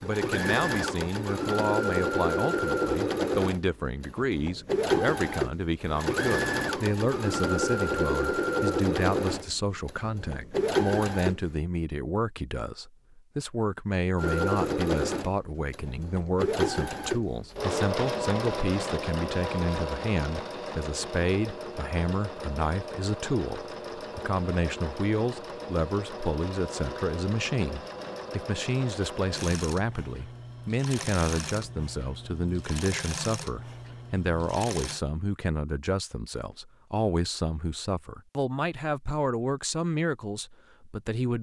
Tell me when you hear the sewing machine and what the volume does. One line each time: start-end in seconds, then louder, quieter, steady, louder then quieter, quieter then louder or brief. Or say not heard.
0.0-11.6 steady
14.2-35.0 quieter.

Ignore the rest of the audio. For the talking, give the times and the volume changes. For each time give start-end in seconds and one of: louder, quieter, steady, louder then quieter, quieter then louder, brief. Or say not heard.
0.0-41.3 steady.